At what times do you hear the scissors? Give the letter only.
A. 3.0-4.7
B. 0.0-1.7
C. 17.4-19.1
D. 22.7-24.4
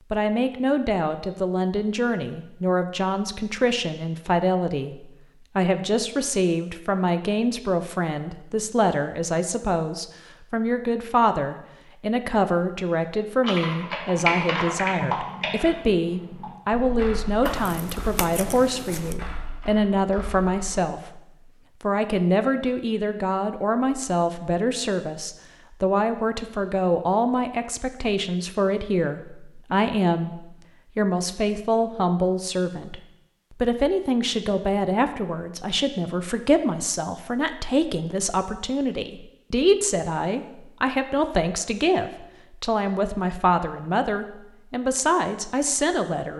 C.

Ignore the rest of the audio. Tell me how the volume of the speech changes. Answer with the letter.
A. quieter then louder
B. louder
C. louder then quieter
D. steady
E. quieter
D.